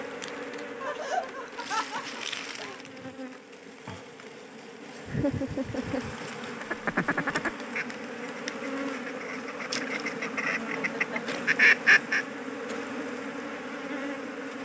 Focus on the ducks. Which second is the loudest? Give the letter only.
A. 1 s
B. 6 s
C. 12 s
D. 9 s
C.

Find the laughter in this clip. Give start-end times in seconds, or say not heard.
0.8-2.8, 5.0-6.2, 10.8-11.3.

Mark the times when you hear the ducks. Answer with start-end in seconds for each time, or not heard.
6.6-12.2.